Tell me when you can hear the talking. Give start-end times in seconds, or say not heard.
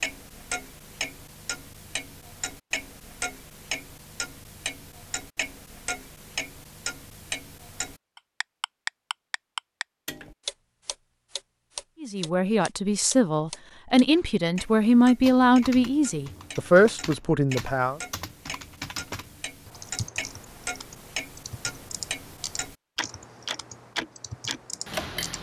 12.0-18.0.